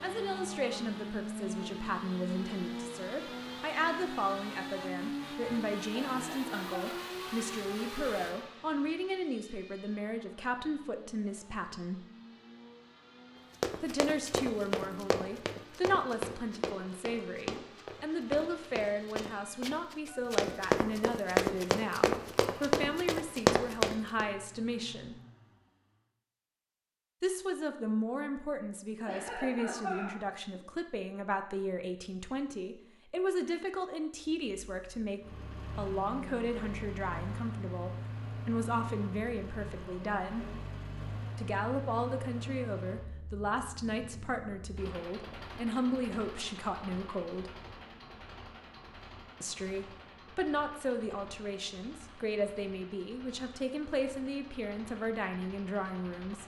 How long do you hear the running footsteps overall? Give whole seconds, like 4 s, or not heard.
11 s.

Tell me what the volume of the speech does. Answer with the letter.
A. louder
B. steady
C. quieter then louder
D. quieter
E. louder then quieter
B.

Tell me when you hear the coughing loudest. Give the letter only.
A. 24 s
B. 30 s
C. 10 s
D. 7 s
B.